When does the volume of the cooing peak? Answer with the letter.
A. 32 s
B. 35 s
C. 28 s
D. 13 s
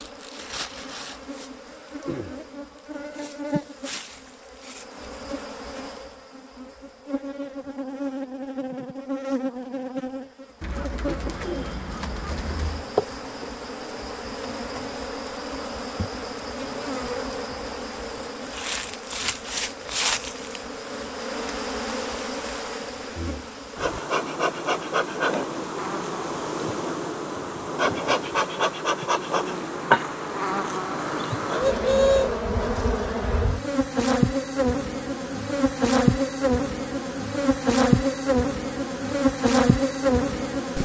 A.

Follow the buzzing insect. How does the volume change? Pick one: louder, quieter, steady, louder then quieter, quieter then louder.
louder.